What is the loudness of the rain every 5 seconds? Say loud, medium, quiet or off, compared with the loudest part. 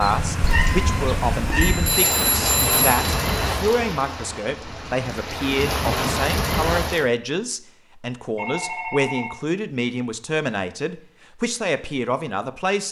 loud, loud, off.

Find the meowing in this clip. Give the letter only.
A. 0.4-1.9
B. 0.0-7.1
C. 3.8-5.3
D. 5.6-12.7
A.